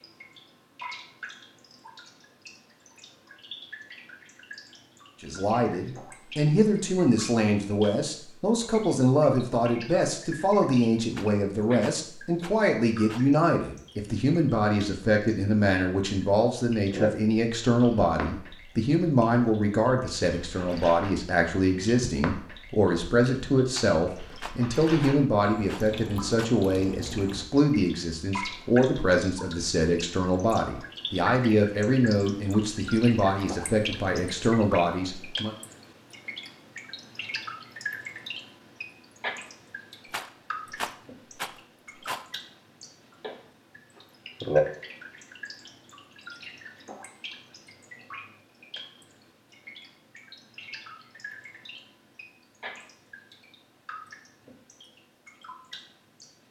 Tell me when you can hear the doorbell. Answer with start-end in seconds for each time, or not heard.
not heard.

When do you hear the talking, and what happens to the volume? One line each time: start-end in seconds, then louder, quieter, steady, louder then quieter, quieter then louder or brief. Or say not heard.
5.2-35.5 steady.